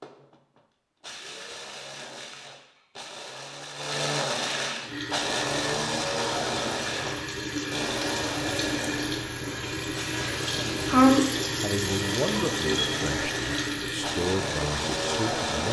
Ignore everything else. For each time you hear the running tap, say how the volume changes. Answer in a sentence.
You can hear the running tap from 4.8 to 15.6 s, getting louder then quieter.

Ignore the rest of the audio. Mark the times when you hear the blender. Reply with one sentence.
The blender can be heard from 0.0 to 15.6 s.